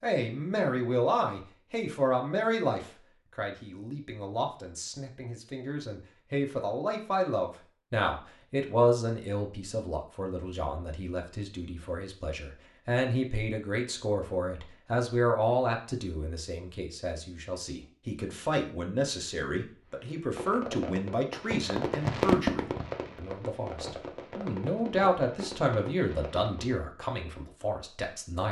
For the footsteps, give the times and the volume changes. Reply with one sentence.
The footsteps can't be heard in this clip.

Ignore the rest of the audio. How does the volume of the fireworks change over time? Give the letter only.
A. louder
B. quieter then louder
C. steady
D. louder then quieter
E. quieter
D.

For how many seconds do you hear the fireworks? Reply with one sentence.
You can hear the fireworks for 7 seconds altogether.